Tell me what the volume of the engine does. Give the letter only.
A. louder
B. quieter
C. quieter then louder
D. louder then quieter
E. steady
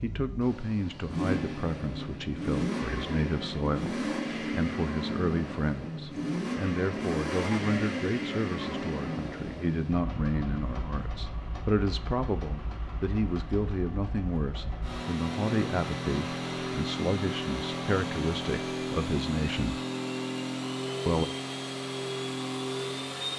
C.